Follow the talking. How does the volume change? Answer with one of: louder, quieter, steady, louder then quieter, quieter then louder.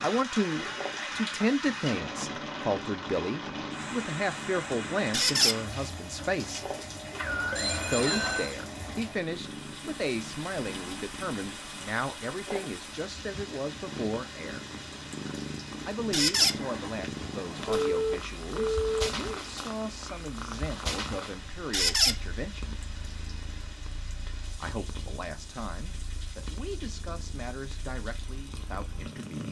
quieter.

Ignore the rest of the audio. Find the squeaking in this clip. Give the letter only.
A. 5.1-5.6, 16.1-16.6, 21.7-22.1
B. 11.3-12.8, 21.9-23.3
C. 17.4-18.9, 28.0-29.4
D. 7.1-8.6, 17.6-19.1
A.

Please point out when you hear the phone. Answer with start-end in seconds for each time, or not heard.
7.1-8.6, 17.6-19.1.